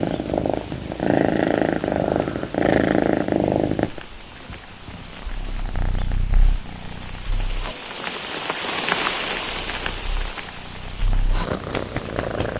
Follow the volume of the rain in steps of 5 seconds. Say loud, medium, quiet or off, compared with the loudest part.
quiet, loud, medium.